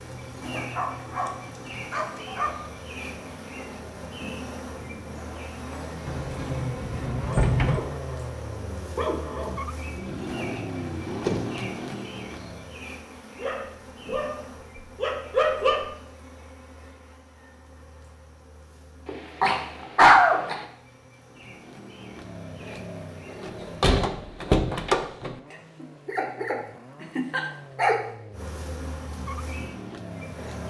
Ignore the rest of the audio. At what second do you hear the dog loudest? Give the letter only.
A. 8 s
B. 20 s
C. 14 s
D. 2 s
B.